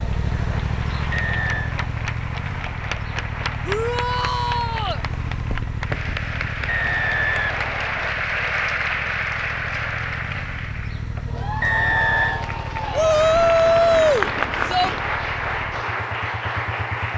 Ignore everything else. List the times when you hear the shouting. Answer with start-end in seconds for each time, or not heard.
3.6-5.0, 12.9-14.9.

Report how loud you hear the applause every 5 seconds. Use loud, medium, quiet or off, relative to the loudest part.
medium, loud, loud, loud.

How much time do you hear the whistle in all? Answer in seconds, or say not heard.
3 s.